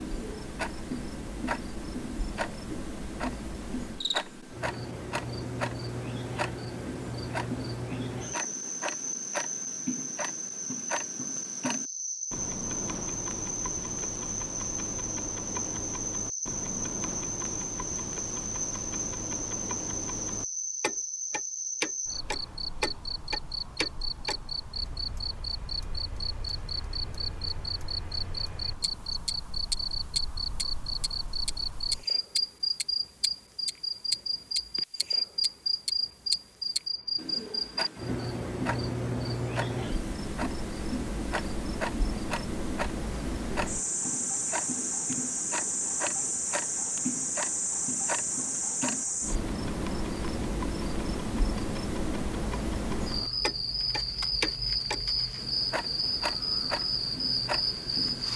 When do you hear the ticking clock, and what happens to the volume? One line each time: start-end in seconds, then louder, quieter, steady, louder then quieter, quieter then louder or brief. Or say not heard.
0.0-58.3 steady.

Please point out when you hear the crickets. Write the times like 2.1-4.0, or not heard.
0.0-58.3.